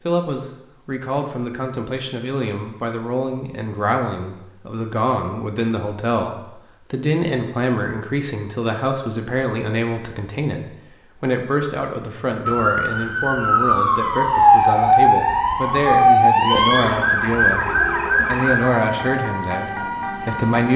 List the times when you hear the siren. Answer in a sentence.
You can hear the siren from 12.4 to 20.7 s.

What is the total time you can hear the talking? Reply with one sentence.
You can hear the talking for 20 seconds altogether.